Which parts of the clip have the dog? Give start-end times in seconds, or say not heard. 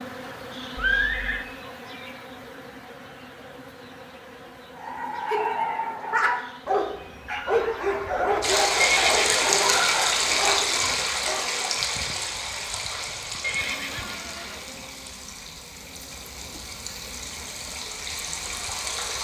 4.8-11.4.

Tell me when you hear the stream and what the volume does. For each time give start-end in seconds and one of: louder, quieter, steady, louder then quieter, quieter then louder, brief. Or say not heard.
8.4-19.1 quieter then louder.